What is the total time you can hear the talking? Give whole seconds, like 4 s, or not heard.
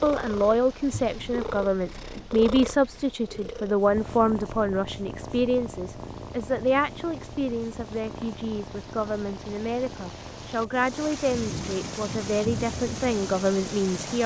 14 s.